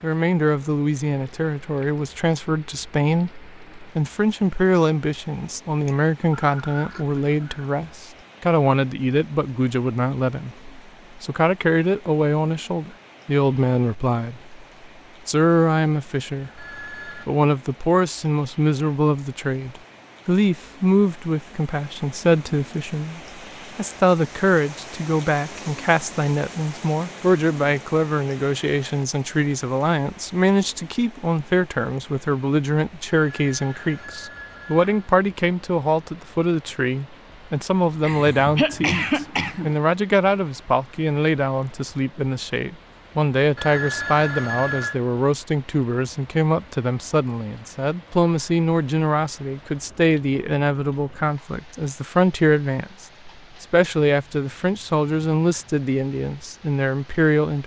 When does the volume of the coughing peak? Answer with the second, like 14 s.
39 s.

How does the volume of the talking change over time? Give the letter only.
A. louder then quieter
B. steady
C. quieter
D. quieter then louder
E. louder
B.